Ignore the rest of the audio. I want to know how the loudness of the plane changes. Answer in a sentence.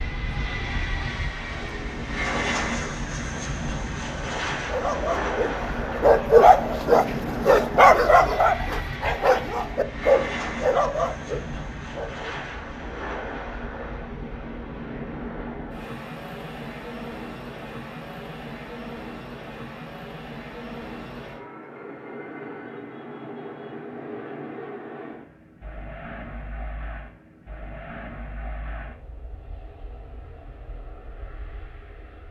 The volume of the plane goes down.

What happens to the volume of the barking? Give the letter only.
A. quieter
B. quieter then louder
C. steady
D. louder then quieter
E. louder
A.